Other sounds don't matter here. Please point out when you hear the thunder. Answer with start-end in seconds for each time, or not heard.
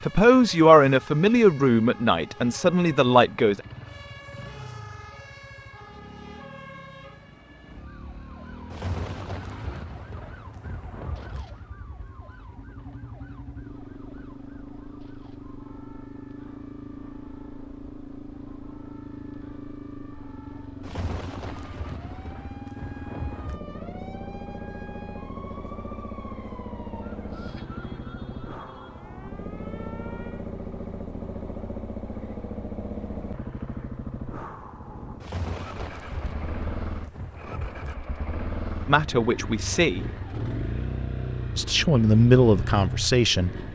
8.7-11.4, 20.8-23.6, 35.2-38.0.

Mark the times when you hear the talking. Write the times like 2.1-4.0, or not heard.
0.0-3.6, 38.9-40.0, 41.5-43.5.